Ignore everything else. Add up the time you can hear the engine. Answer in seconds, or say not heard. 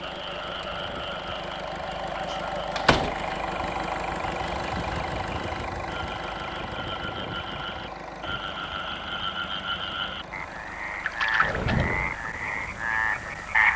14 s.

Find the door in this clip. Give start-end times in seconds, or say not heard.
2.8-3.4, 11.4-12.2.